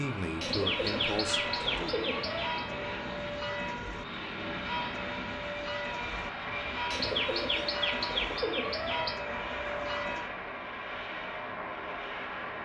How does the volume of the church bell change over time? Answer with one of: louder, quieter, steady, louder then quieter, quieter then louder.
steady.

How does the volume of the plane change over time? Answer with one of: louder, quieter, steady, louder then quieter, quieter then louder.
steady.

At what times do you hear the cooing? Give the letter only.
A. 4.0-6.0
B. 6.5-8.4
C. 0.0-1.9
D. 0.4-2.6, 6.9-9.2
D.